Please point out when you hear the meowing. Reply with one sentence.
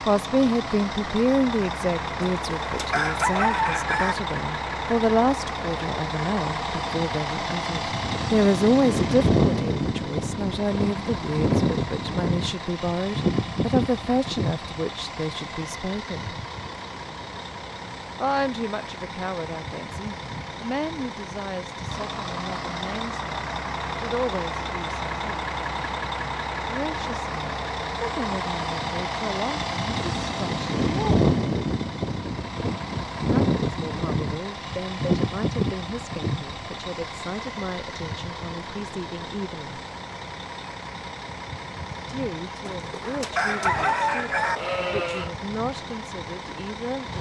You can't hear the meowing here.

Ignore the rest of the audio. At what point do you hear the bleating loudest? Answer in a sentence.
The loudest moment of the bleating is at 45 seconds.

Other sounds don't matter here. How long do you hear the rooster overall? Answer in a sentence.
The rooster can be heard for 4 seconds in total.